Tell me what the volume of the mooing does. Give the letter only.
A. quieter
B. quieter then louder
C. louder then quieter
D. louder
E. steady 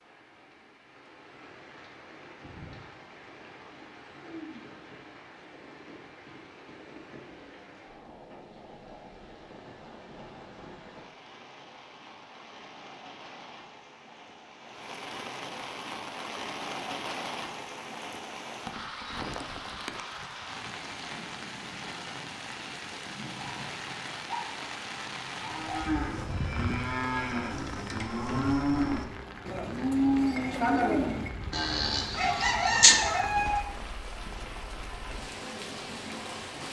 C.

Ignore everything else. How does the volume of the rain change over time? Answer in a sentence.
The loudness of the rain goes up.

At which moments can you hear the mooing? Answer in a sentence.
You can hear the mooing from 25.4 to 33.0 s.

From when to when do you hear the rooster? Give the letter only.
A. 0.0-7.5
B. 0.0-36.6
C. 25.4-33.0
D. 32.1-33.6
D.